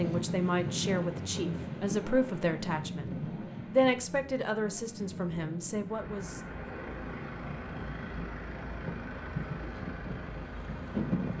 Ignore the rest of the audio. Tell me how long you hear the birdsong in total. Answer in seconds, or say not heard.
not heard.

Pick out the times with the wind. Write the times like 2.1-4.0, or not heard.
0.0-11.3.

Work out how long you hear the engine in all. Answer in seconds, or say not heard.
11 s.